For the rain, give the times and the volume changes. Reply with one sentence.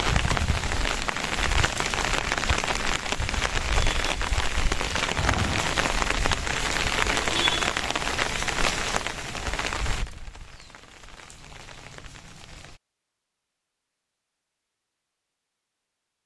You can hear the rain from 0.0 to 12.8 s, getting quieter.